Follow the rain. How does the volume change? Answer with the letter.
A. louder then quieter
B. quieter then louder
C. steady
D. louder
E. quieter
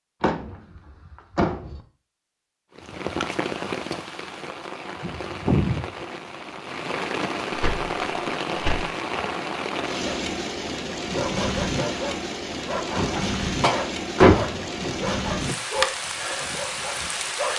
C.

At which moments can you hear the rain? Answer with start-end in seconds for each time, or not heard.
2.8-17.5.